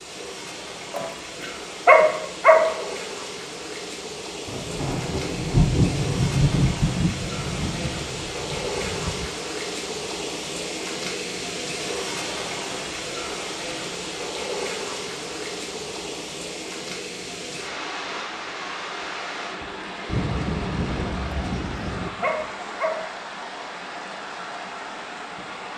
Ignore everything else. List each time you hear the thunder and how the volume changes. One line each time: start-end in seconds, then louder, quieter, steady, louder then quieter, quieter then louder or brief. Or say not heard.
4.5-9.3 quieter
20.1-22.1 brief.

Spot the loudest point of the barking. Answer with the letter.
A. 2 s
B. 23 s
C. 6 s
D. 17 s
A.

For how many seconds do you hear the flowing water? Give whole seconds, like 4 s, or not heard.
26 s.